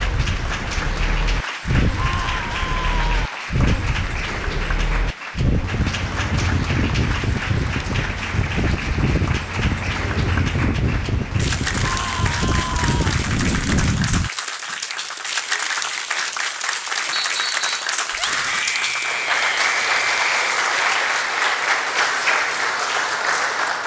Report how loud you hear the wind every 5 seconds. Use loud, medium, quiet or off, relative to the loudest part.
loud, loud, loud, off, off.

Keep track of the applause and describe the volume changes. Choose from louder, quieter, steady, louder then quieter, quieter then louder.
louder.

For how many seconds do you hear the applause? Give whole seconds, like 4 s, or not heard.
24 s.